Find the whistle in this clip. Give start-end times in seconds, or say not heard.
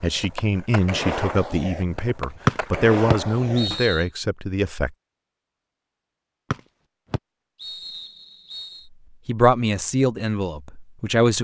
2.5-4.0, 6.5-8.8.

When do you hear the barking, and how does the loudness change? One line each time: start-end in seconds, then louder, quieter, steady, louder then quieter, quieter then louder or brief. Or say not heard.
not heard.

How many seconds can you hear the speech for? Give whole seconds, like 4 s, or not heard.
7 s.